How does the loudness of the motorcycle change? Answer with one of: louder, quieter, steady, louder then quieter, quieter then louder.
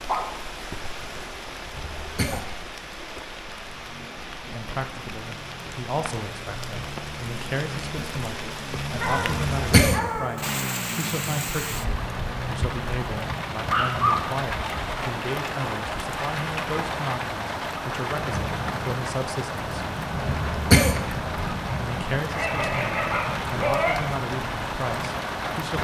louder.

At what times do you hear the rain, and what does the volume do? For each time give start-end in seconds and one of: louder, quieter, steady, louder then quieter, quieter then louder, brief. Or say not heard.
0.0-25.7 louder.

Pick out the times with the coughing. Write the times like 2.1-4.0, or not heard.
1.8-2.5, 9.5-10.0, 20.2-21.0.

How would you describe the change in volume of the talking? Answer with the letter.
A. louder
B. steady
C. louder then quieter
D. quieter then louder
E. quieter
B.